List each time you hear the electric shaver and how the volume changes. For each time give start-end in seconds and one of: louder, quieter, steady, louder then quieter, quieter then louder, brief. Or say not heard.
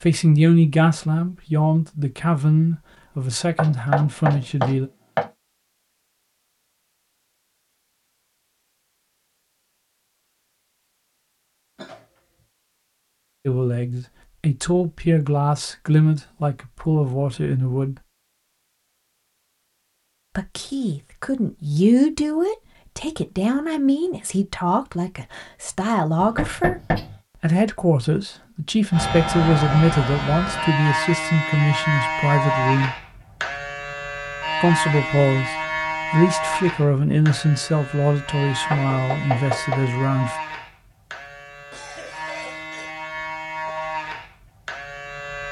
28.9-45.4 quieter.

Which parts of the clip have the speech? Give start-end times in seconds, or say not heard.
0.0-4.9, 13.4-18.0, 20.4-26.8, 27.4-33.0, 34.6-40.4.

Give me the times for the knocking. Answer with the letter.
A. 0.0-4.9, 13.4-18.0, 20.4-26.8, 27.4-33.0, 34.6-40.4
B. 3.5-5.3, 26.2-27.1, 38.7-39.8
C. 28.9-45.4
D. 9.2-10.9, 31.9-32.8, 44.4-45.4
B.